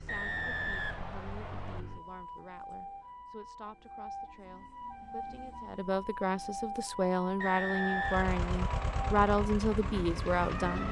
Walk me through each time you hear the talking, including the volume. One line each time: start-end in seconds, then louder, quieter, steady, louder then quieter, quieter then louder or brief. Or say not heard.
0.0-10.8 louder.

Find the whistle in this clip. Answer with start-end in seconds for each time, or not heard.
0.1-1.8, 7.4-8.9.